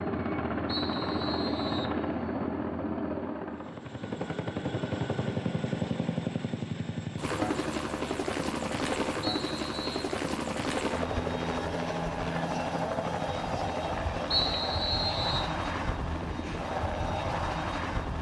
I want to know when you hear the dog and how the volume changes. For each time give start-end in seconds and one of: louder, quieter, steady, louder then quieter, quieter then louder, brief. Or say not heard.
not heard.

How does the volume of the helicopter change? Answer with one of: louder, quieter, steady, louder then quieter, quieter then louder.
steady.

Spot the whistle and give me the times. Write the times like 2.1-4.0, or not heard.
0.7-1.9, 9.2-10.0, 14.3-15.5.